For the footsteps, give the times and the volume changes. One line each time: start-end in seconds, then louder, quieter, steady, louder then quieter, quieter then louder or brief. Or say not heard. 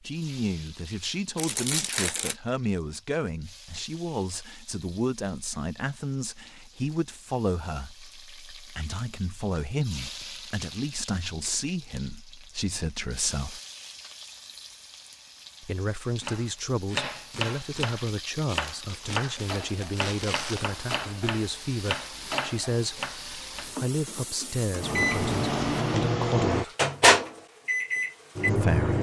not heard.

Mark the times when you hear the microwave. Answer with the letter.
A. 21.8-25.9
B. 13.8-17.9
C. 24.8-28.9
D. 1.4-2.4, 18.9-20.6
C.